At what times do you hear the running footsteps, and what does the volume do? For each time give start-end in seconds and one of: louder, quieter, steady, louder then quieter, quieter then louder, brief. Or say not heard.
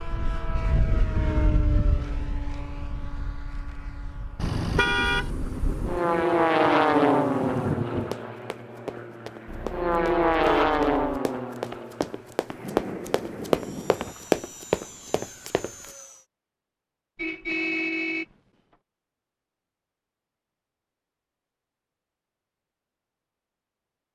8.1-15.9 louder.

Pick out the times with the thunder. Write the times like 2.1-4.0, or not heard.
4.4-8.2, 12.4-14.2.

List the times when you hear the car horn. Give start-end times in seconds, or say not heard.
4.3-5.3, 9.4-11.0, 17.1-18.2.